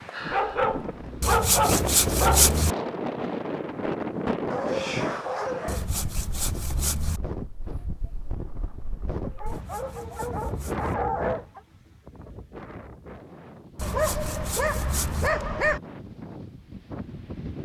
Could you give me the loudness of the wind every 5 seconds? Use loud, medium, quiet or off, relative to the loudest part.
loud, medium, medium, medium.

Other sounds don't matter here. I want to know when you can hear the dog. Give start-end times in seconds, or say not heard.
0.3-2.5, 4.5-5.8, 9.2-11.6, 13.8-15.8.